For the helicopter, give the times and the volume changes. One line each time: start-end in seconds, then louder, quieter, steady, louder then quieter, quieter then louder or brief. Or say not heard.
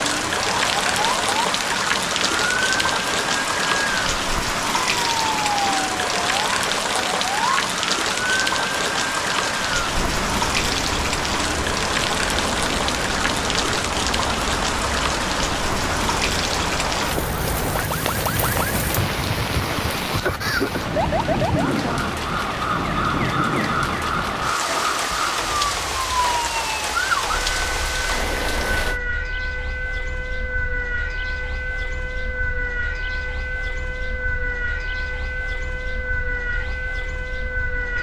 not heard.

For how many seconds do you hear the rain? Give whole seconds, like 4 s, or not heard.
29 s.